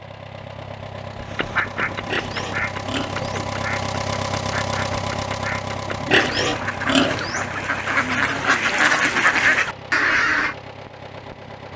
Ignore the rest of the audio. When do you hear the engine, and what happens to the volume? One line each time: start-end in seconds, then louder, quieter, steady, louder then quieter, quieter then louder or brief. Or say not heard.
0.0-11.7 louder then quieter.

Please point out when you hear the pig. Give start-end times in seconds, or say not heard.
1.9-3.3, 6.0-7.5.